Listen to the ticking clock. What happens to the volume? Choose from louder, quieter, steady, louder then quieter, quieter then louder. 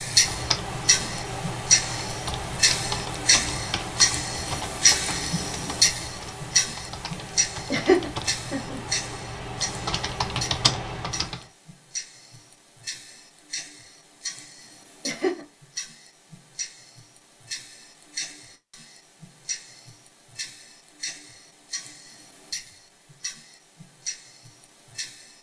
quieter.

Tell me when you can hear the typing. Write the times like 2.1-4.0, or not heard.
0.0-11.5.